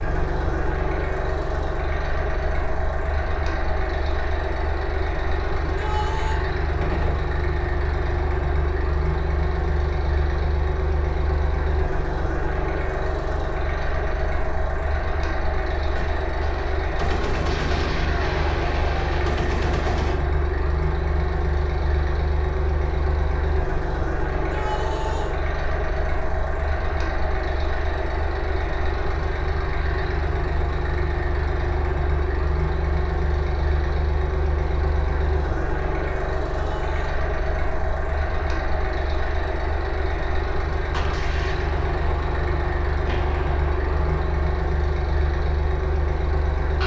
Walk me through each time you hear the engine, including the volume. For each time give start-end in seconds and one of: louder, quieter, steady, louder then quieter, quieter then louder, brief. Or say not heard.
0.0-46.8 steady.